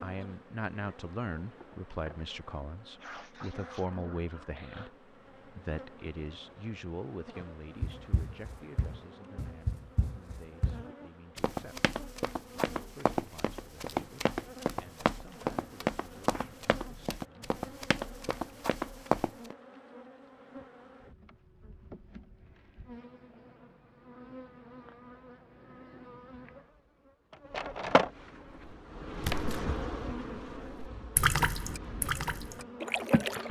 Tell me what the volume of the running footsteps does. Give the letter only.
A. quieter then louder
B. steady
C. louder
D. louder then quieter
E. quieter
C.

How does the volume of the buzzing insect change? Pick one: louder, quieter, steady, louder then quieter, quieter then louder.
louder.